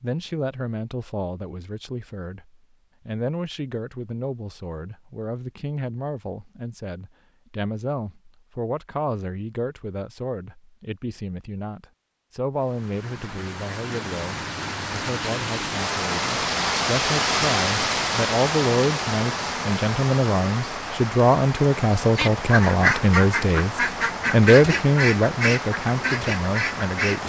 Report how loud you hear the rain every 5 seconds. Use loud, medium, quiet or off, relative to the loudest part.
off, off, medium, loud, medium, medium.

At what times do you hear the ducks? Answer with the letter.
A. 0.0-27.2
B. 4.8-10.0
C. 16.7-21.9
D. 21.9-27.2
D.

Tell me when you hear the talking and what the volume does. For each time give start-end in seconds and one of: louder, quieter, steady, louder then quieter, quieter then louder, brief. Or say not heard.
0.0-27.2 louder.